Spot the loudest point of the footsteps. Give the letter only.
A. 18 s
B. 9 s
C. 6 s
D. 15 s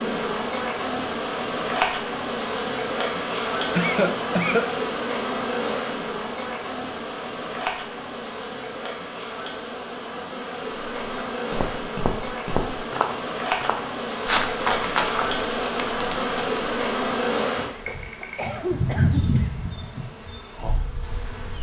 D.